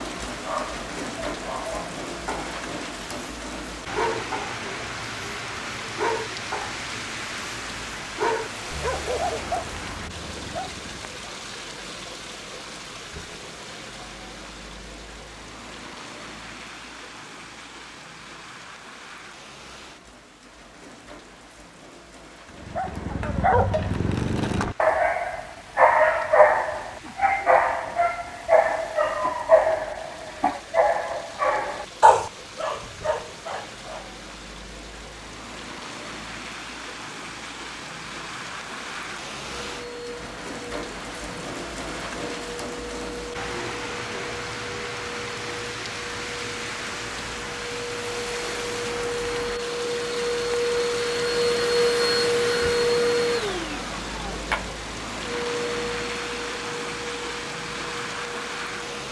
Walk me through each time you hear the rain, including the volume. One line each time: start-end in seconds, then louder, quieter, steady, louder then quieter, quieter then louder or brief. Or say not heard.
0.0-59.0 quieter then louder.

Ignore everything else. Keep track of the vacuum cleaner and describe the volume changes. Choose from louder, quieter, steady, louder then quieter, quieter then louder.
louder then quieter.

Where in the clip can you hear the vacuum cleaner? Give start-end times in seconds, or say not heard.
39.5-59.0.